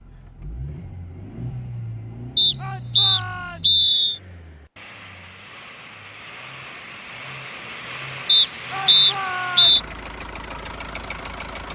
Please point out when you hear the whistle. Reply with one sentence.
You can hear the whistle from 2.4 to 4.2 s and from 8.2 to 9.8 s.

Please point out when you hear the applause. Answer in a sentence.
The applause can't be heard in this clip.